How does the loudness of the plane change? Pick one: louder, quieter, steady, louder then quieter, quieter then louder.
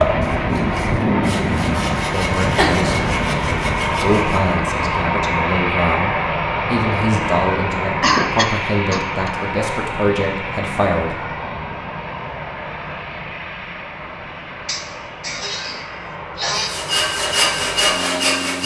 quieter.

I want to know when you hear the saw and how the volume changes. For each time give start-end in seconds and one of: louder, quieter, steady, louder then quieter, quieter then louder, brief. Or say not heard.
0.0-4.5 louder
16.5-18.6 brief.